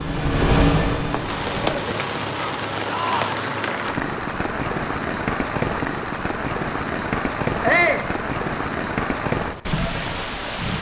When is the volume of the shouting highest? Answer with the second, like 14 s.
8 s.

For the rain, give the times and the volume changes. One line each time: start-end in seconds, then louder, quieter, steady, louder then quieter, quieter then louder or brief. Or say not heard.
0.0-10.7 steady.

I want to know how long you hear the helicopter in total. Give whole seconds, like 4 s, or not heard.
2 s.